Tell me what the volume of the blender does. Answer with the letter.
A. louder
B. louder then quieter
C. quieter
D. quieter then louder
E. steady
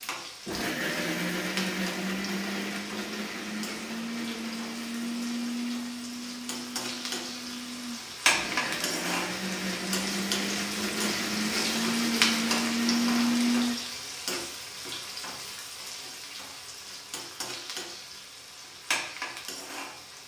D.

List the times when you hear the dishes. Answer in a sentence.
You can't hear the dishes here.